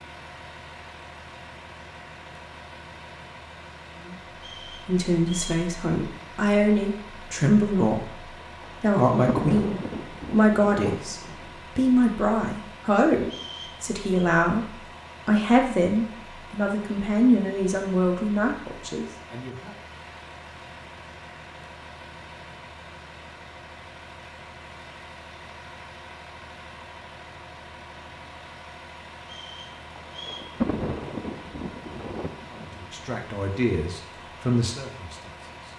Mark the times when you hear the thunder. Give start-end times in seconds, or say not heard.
8.4-11.6, 29.7-33.2.